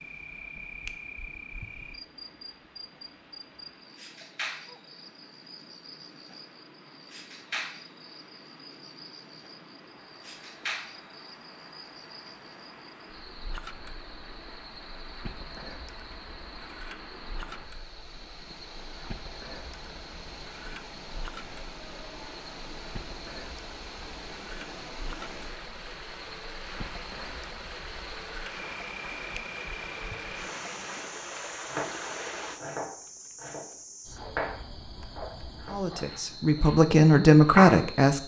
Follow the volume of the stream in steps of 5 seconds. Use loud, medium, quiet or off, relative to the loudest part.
quiet, quiet, medium, medium, medium, loud, loud, off.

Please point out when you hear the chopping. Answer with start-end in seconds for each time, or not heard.
31.6-37.9.